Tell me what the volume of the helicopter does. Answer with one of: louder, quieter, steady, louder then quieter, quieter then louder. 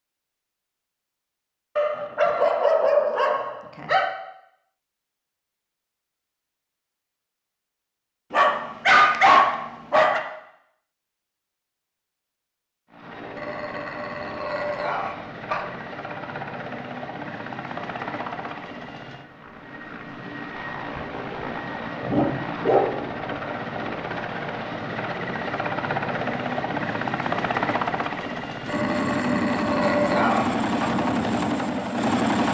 louder.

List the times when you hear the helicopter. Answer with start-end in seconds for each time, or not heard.
12.9-32.4.